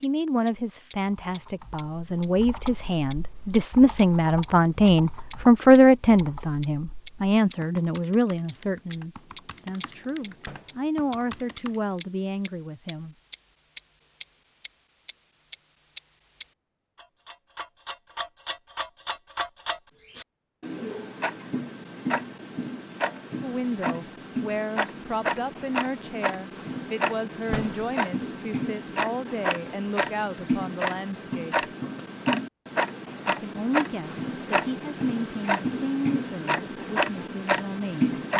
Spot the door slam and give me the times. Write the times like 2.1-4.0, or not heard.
10.4-10.8, 27.5-27.9.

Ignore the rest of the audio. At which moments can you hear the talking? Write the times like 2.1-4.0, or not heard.
0.0-13.2, 23.4-31.6, 33.2-38.3.